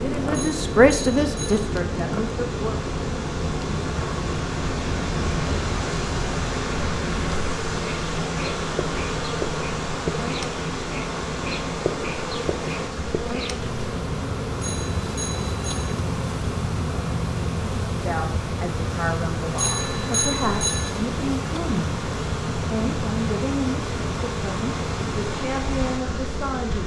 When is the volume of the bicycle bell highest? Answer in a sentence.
The loudest moment of the bicycle bell is at 20 seconds.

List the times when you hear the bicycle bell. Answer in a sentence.
The bicycle bell can be heard from 0.3 to 1.7 s, from 14.6 to 15.9 s and from 19.6 to 20.9 s.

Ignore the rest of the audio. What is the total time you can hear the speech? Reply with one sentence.
The speech can be heard for 12 seconds in total.